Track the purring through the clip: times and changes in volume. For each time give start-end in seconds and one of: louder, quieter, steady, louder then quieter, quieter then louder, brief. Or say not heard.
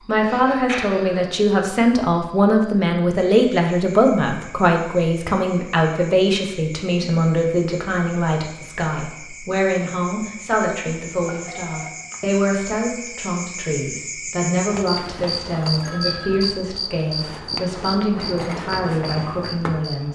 not heard.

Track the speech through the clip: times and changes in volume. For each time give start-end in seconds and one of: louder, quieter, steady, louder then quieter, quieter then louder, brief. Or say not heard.
0.1-20.0 quieter.